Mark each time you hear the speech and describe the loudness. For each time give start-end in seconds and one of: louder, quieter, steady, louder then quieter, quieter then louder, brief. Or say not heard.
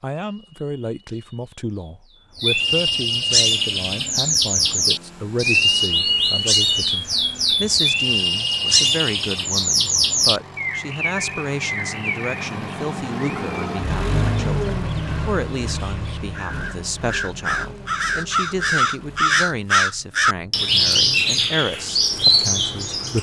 0.0-23.1 steady.